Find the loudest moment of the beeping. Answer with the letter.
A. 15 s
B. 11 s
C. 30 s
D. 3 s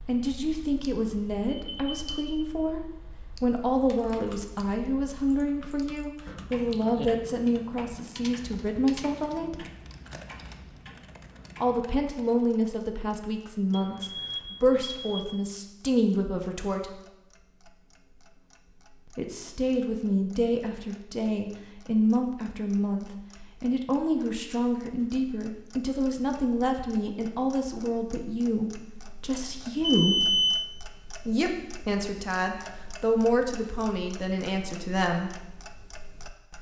C.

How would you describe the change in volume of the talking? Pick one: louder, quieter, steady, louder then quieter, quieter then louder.
steady.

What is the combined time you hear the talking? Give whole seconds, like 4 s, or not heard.
30 s.